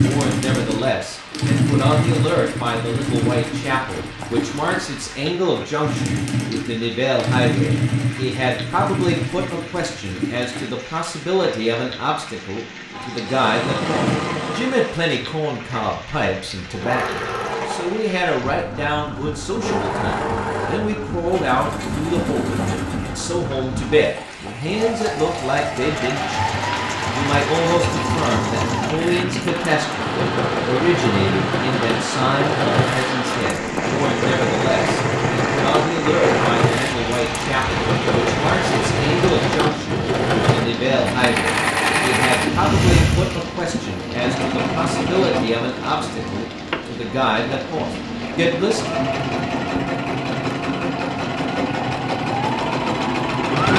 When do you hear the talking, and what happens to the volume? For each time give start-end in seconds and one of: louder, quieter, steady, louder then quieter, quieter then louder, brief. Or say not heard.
0.0-49.0 steady.